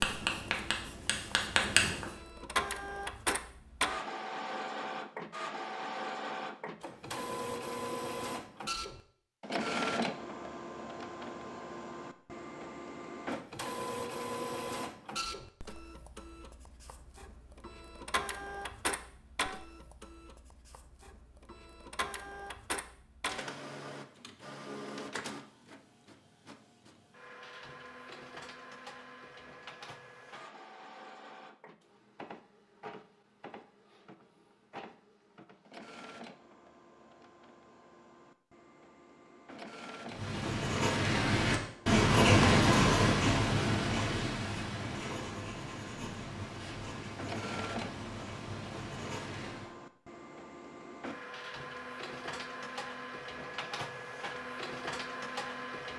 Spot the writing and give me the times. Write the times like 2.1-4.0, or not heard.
0.0-2.1, 40.0-49.8.